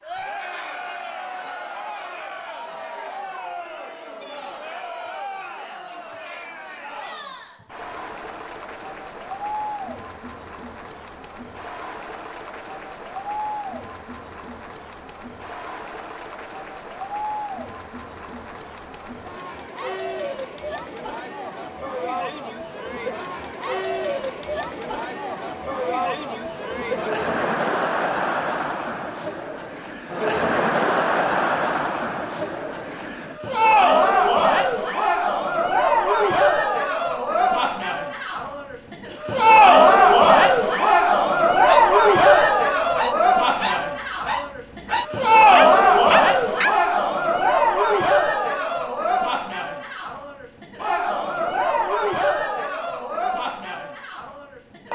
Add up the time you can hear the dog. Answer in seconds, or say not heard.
5 s.